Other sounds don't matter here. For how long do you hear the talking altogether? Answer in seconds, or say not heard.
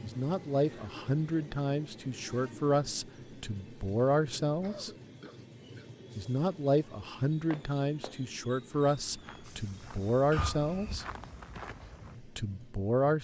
11 s.